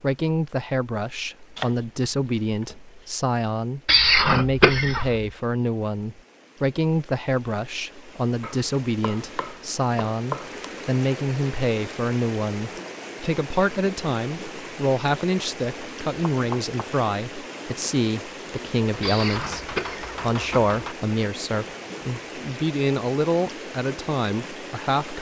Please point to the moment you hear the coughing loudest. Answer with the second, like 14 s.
4 s.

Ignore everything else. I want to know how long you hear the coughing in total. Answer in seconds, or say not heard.
3 s.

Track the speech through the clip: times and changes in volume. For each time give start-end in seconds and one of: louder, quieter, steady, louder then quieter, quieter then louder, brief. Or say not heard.
0.0-25.1 steady.